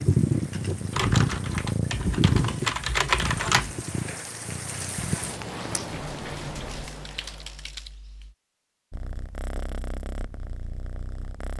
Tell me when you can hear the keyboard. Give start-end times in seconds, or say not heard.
0.9-3.8, 6.5-8.3.